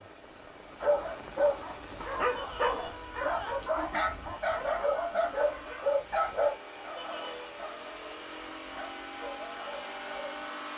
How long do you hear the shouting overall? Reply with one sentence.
The shouting can be heard for 2 seconds in total.